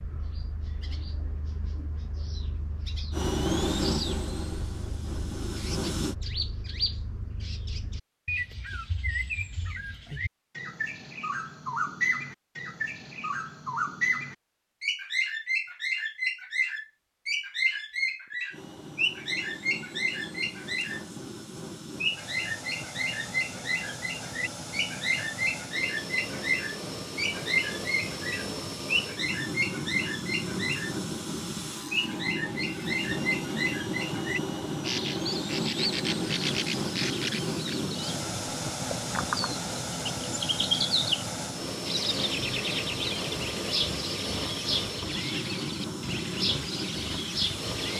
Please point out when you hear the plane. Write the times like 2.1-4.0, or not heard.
3.1-6.2, 18.5-47.9.